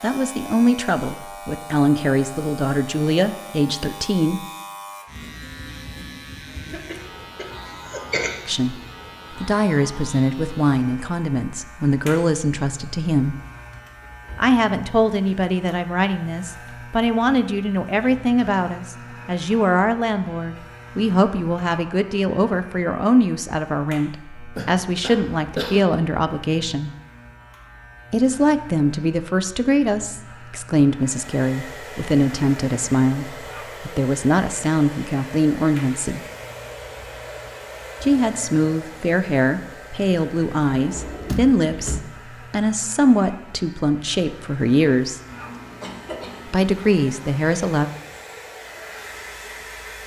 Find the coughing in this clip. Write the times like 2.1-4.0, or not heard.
6.5-8.3, 24.6-25.9, 45.3-46.7.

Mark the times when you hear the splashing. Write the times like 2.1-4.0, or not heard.
not heard.